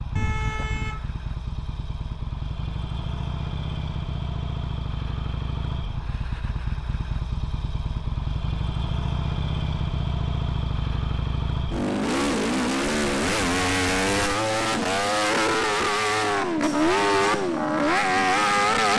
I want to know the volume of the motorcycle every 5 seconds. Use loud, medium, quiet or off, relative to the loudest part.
quiet, medium, loud, loud.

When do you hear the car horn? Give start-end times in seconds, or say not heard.
0.1-1.1.